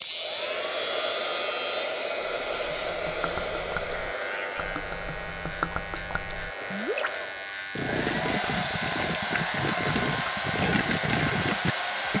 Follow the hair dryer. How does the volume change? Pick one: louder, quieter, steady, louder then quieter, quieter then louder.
quieter then louder.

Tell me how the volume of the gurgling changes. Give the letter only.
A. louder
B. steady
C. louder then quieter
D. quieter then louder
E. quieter
A.